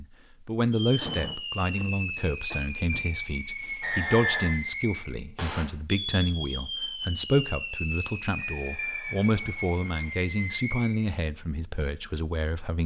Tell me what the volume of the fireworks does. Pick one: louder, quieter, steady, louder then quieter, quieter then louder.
steady.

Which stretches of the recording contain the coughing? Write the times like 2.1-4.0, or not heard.
1.0-3.1.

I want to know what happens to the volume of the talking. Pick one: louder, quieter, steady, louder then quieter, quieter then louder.
steady.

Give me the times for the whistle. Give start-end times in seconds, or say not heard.
3.8-4.5, 8.3-10.1.